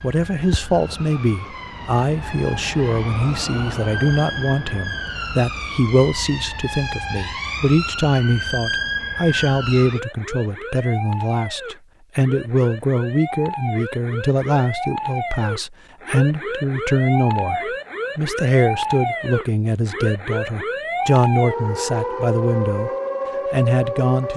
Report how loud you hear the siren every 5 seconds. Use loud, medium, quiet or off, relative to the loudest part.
medium, loud, medium, loud, loud.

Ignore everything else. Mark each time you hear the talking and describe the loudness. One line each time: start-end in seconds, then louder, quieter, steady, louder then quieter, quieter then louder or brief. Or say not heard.
0.0-22.9 steady
23.5-24.3 brief.